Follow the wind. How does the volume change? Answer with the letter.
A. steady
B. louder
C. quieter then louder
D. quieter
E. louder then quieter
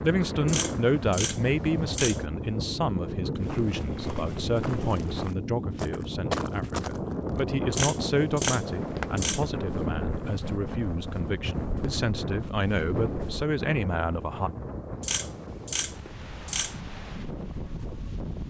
D.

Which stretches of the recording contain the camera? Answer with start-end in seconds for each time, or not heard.
0.5-2.2, 7.7-9.4, 15.0-16.8.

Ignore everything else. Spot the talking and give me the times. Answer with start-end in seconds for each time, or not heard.
0.0-14.5.